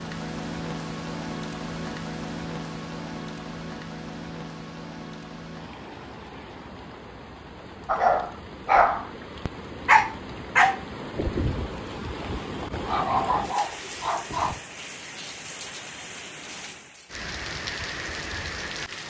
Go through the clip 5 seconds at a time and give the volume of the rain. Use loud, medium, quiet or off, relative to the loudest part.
loud, medium, loud, loud.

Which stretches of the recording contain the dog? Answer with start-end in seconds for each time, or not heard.
7.8-14.6.